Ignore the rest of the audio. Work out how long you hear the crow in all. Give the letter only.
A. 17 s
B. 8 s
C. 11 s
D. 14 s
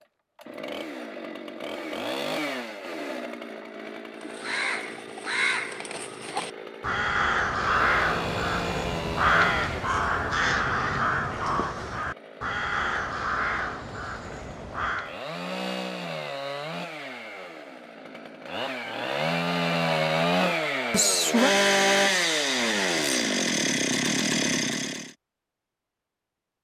C.